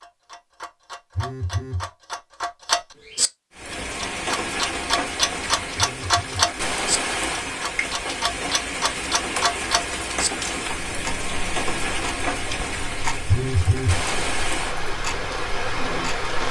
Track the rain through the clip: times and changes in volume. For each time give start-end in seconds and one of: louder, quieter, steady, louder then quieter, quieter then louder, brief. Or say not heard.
3.5-16.4 steady.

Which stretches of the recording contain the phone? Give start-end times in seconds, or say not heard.
1.1-1.9, 5.8-6.5, 13.2-14.0.